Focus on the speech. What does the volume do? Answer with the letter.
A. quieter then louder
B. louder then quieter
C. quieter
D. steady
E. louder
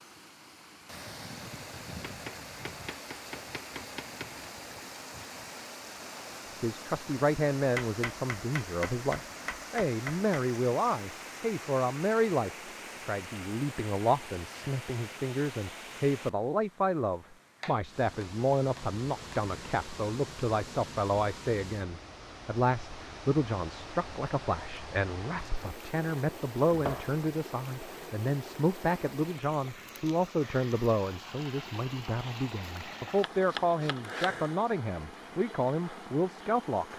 D.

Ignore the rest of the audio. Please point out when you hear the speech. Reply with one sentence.
The speech can be heard from 6.5 to 36.9 s.